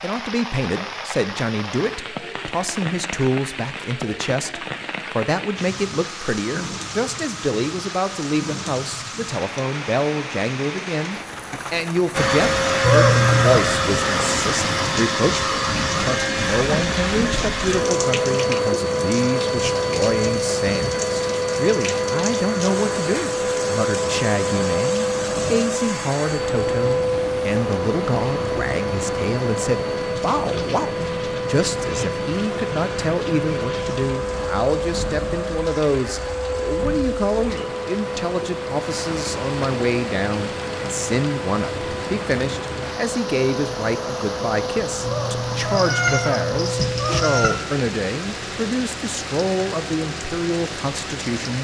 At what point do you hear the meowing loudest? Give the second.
13 s.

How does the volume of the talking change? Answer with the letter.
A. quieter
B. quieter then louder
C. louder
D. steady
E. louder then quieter
D.